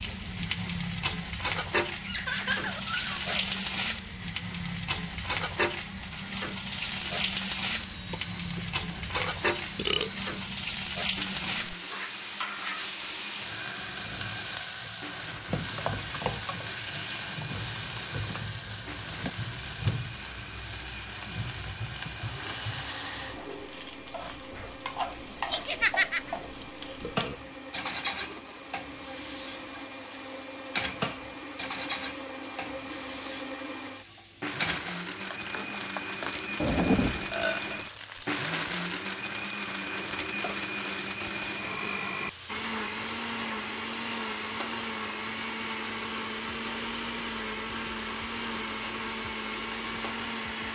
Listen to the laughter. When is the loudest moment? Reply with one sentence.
The loudest moment of the laughter is at 26 seconds.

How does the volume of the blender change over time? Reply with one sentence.
The volume of the blender goes up.